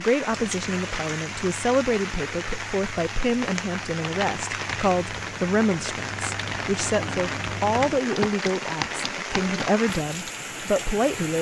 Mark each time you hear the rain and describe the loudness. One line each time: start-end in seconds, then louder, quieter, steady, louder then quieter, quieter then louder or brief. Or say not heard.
0.0-11.3 steady.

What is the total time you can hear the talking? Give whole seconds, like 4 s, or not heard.
11 s.